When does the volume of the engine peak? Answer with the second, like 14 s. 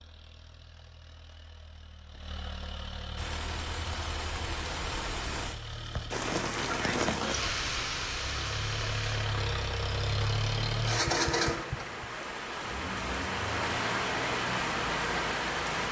11 s.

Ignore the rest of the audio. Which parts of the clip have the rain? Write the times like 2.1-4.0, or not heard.
3.1-15.8.